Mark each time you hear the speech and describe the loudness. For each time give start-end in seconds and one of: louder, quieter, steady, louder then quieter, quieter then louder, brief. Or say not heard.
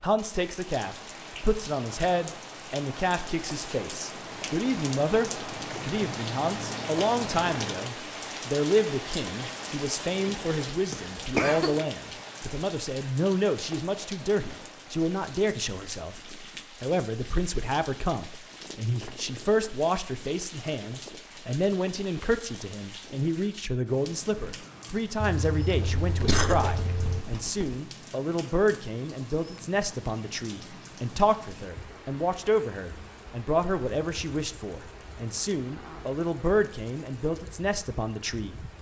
0.0-38.6 steady.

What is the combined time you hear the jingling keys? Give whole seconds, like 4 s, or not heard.
2 s.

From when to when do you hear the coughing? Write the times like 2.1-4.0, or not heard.
10.9-11.8, 26.1-27.8.